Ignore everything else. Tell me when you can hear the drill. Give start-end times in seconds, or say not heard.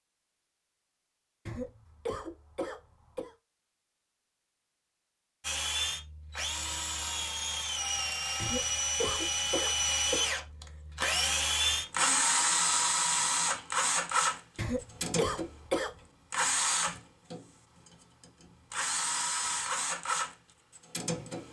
5.4-21.4.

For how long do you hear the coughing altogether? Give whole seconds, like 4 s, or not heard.
5 s.